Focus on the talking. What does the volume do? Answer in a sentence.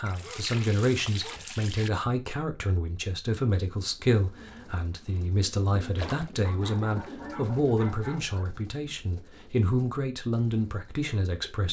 The volume of the talking stays about the same.